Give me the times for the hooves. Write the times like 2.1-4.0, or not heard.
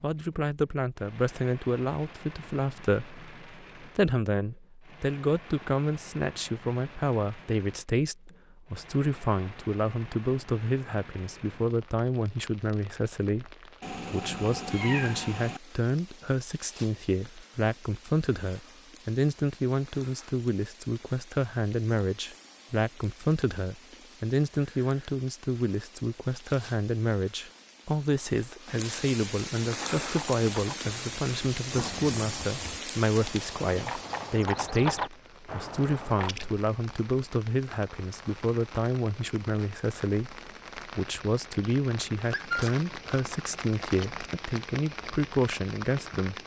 29.7-36.4.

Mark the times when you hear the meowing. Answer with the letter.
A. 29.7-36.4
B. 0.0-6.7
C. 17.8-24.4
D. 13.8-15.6
D.